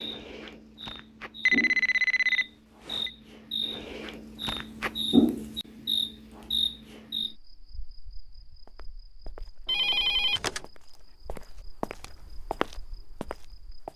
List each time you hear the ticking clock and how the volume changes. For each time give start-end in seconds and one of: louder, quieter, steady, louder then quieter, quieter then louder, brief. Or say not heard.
not heard.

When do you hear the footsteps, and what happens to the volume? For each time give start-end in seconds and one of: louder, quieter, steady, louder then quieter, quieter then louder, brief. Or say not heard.
8.7-13.9 quieter then louder.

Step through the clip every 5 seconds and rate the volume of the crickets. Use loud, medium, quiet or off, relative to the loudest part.
medium, loud, quiet.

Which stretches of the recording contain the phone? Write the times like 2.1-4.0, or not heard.
1.4-3.1, 9.7-10.6.